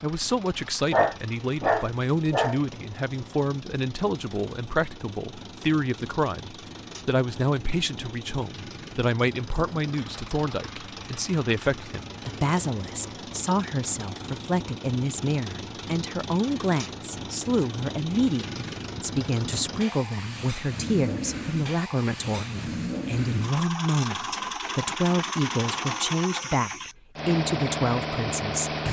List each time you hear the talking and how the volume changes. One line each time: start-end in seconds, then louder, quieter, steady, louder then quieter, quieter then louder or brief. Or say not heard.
0.0-28.8 steady.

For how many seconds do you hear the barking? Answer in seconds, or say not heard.
2 s.